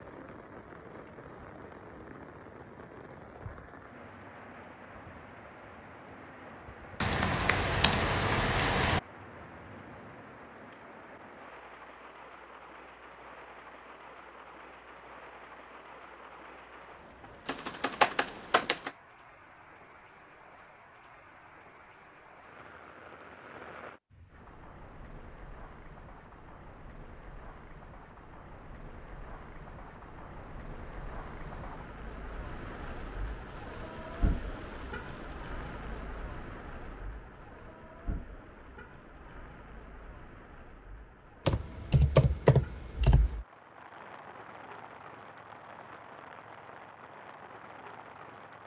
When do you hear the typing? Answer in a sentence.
You can hear the typing from 7.0 to 9.0 s, from 17.4 to 18.9 s and from 41.5 to 43.5 s.